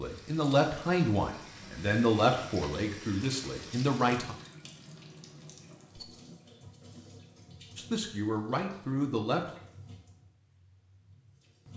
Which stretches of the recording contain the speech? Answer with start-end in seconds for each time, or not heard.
0.0-4.3, 7.8-9.5.